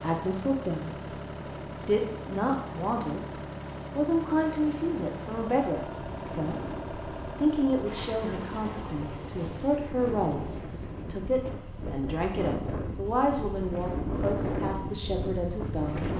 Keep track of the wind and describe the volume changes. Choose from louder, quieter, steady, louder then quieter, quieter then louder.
louder.